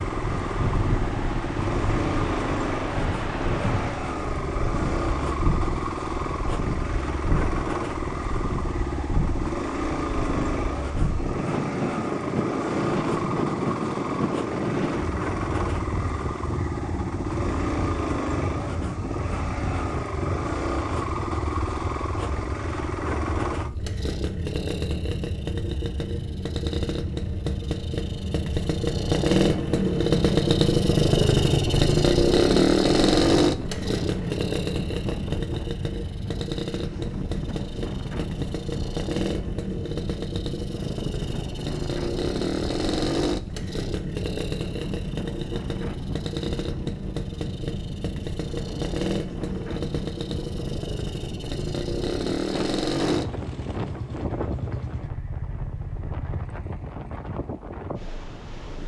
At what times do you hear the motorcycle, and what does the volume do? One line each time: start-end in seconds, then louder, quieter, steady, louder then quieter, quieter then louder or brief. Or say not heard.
0.0-56.6 louder then quieter.